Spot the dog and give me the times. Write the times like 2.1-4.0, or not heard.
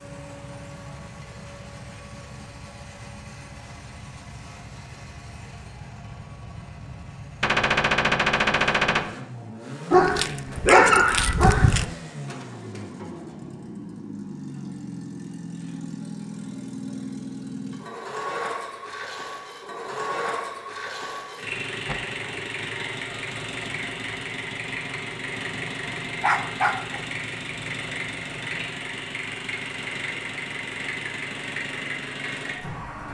9.9-11.8, 26.2-27.0.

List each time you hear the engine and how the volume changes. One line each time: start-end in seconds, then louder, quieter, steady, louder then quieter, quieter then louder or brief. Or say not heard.
0.0-33.0 louder.